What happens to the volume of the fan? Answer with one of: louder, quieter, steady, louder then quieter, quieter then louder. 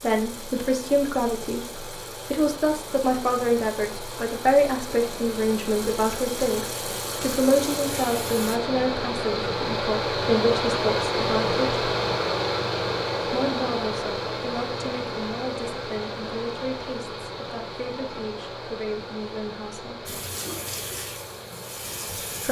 louder then quieter.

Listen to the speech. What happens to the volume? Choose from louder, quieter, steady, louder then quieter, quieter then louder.
quieter.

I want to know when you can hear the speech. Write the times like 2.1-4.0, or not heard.
0.0-11.7, 13.2-20.1.